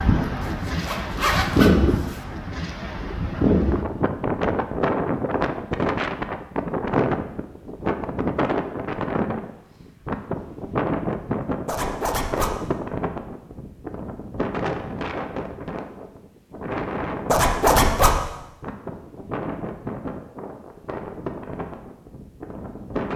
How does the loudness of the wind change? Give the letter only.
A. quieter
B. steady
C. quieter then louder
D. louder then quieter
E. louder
A.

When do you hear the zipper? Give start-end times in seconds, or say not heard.
0.4-2.2, 11.7-12.6, 17.2-18.2.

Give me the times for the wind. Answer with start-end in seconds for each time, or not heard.
0.0-23.1.